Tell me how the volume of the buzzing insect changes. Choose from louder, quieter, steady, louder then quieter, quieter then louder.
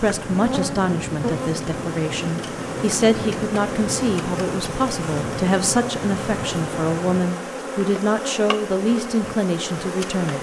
steady.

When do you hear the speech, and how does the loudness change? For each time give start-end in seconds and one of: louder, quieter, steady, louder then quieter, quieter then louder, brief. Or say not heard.
0.0-10.3 steady.